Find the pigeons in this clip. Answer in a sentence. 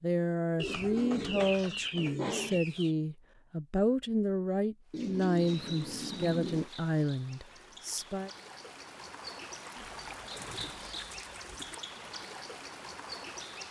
The pigeons can be heard from 0.6 to 3.0 s, from 4.9 to 6.7 s and from 9.8 to 11.8 s.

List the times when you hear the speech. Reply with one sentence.
The speech can be heard from 0.0 to 8.3 s.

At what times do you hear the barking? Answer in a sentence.
The barking can't be heard in this clip.